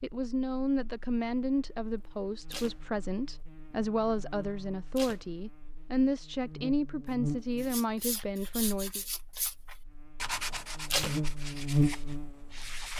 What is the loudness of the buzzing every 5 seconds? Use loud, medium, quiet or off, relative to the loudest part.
quiet, medium, loud.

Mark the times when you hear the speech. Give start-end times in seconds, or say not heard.
0.0-9.0.